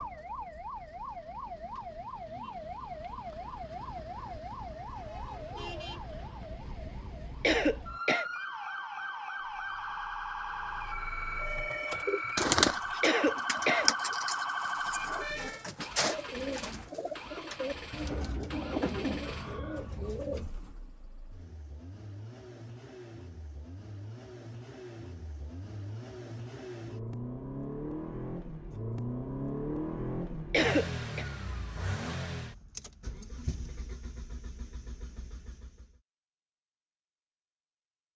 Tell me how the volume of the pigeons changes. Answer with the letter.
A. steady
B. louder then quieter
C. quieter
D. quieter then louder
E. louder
C.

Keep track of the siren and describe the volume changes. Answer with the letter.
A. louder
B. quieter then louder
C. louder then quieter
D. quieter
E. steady
A.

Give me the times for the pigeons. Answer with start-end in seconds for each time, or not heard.
11.7-20.5.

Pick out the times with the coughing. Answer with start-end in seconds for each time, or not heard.
7.4-8.2, 13.0-13.9, 30.5-31.2.